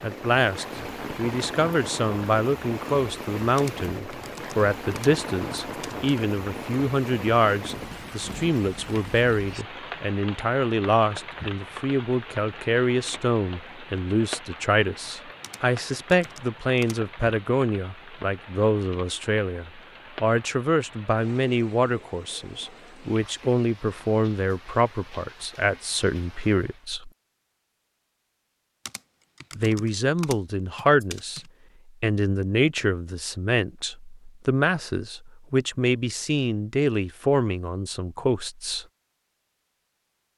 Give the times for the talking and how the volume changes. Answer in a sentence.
You can hear the talking from 0.0 to 27.1 s, at a steady volume; briefly from 29.6 to 31.4 s; and from 32.0 to 38.9 s, at a steady volume.